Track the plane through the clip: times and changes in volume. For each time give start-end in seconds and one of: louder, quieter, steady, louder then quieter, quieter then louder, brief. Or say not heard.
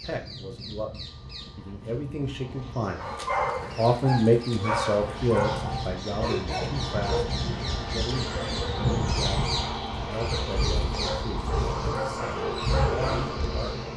0.0-13.9 louder.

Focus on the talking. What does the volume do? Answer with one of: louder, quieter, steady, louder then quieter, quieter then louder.
louder then quieter.